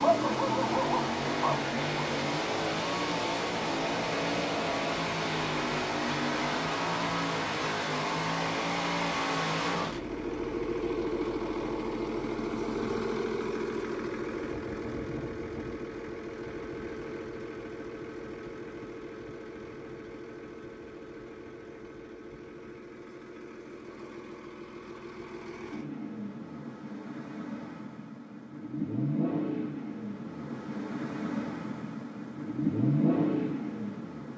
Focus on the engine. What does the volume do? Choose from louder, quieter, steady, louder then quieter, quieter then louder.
quieter then louder.